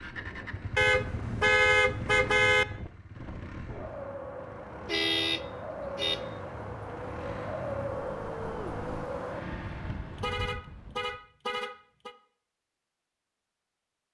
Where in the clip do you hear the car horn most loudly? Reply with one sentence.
The loudest moment of the car horn is at 2 seconds.